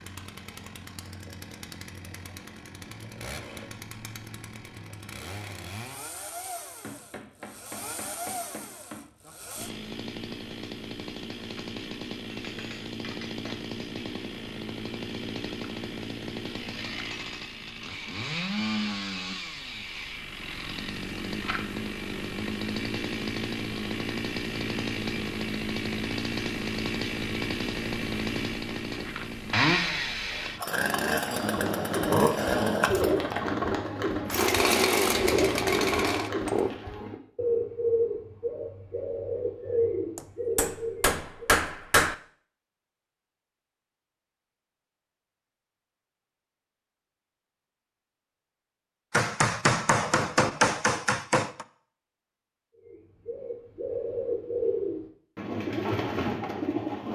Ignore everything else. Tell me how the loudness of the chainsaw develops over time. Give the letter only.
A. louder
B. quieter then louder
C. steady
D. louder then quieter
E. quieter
A.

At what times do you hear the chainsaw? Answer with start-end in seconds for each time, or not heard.
0.0-36.7.